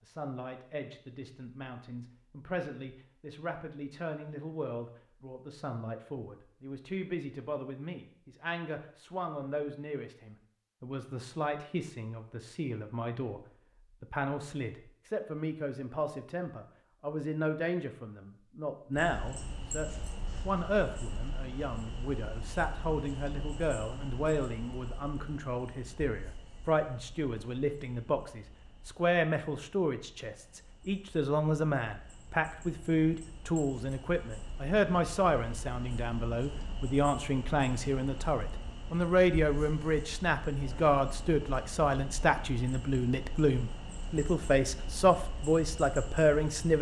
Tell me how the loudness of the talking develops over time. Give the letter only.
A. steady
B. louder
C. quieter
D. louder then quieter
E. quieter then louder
B.